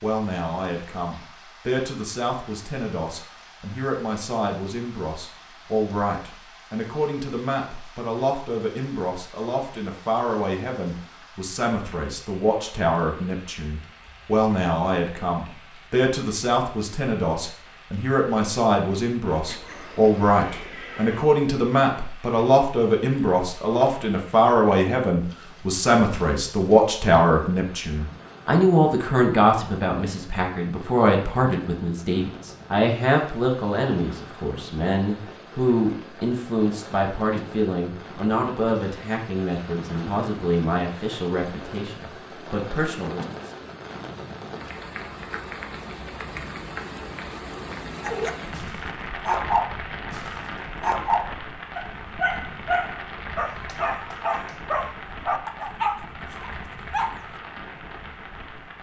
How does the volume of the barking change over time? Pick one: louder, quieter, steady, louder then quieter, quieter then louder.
steady.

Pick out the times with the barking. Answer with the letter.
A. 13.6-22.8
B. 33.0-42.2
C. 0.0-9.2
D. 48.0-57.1
D.